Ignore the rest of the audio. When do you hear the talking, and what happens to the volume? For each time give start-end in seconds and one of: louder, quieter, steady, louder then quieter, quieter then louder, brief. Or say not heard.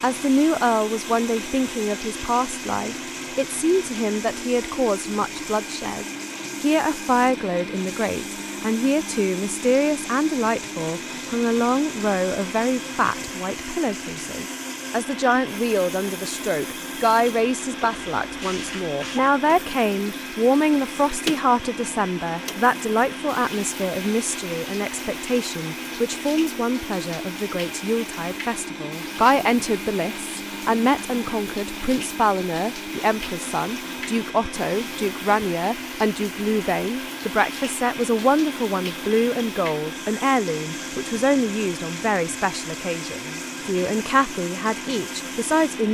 0.0-45.8 steady.